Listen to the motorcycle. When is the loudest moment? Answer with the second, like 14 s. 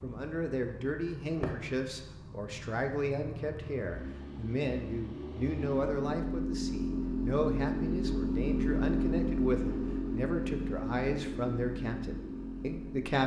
9 s.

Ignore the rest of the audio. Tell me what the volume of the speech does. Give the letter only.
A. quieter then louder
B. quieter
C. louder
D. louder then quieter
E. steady
E.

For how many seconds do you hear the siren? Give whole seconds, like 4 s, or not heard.
not heard.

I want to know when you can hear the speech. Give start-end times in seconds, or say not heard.
0.0-13.2.